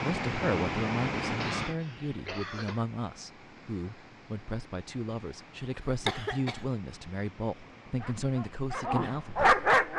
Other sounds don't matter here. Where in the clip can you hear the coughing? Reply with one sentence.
The coughing can be heard from 1.4 to 2.9 s and from 5.8 to 6.7 s.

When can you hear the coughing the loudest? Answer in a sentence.
The volume of the coughing peaks at 6 seconds.